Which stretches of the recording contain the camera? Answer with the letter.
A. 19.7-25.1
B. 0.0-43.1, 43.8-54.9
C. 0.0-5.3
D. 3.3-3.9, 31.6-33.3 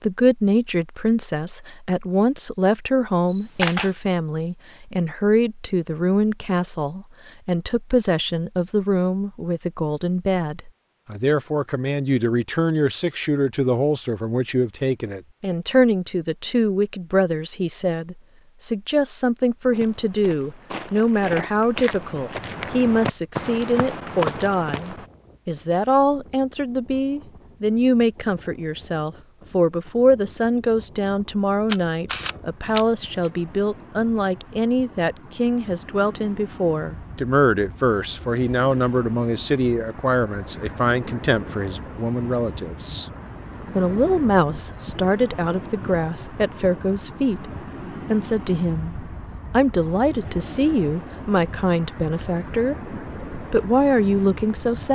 D.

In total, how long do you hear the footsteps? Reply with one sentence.
The footsteps can be heard for 5 seconds in total.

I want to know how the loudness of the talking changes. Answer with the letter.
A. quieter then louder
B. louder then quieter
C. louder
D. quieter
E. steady
E.